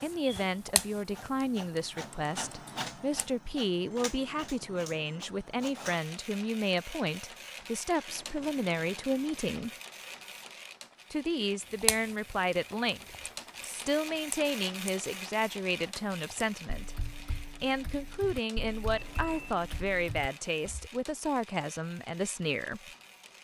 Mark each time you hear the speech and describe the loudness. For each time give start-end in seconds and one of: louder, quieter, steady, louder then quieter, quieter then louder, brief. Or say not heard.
0.0-9.7 steady
11.1-22.9 steady.